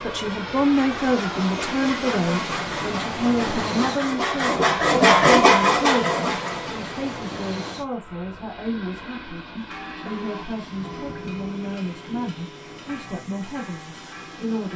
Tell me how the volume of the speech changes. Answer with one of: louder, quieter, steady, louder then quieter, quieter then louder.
quieter.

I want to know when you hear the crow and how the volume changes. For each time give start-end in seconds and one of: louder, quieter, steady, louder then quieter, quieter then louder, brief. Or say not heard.
not heard.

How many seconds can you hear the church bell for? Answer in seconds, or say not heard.
5 s.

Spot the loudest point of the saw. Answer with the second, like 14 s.
5 s.